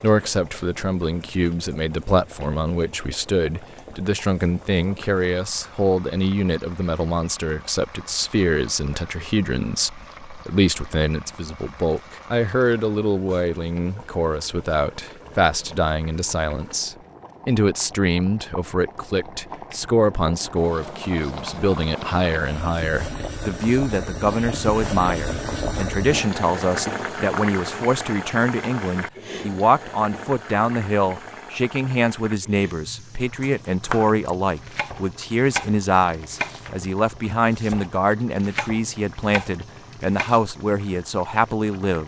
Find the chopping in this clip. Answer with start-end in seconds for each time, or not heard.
33.0-40.4.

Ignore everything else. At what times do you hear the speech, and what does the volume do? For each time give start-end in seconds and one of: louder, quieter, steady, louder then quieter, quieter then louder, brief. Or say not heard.
0.0-42.0 steady.